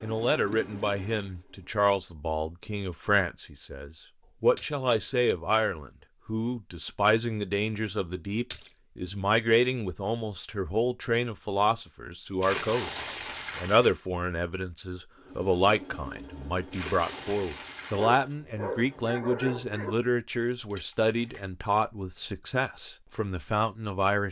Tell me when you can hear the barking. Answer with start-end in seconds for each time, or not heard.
18.1-19.9.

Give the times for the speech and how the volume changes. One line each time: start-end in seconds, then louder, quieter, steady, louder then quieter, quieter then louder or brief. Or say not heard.
0.0-24.2 steady.